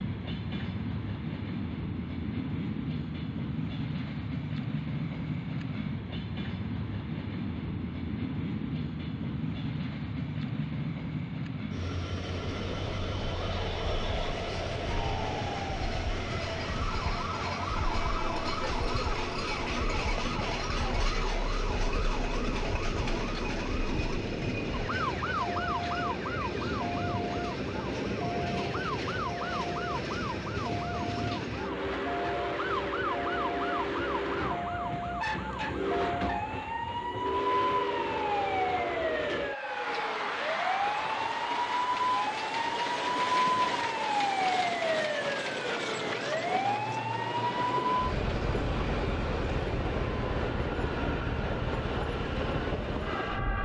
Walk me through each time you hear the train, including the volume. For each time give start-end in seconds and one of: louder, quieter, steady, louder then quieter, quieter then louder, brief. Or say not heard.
0.0-53.6 steady.